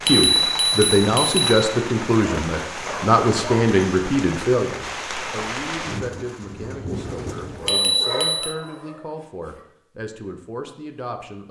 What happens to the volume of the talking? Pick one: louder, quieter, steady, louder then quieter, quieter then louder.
quieter.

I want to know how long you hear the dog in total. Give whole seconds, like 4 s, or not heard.
3 s.